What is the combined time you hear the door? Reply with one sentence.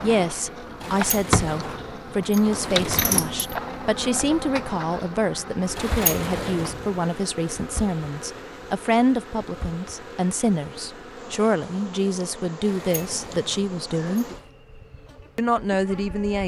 You can hear the door for 6 seconds altogether.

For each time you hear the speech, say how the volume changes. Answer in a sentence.
You can hear the speech from 0.0 to 14.3 s, at a steady volume; and briefly from 15.3 to 16.4 s.